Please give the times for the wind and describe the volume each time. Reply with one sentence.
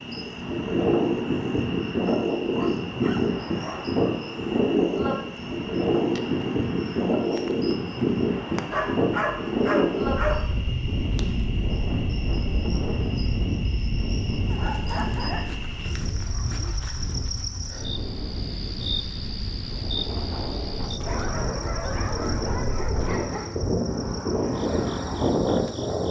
The wind can be heard from 0.0 to 26.0 s, getting quieter then louder.